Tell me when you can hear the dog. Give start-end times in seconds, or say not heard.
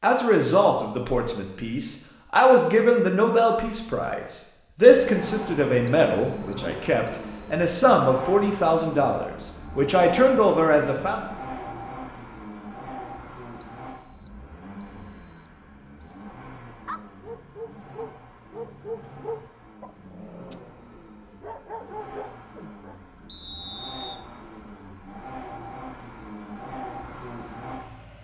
16.9-23.0.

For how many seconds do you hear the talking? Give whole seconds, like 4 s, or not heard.
11 s.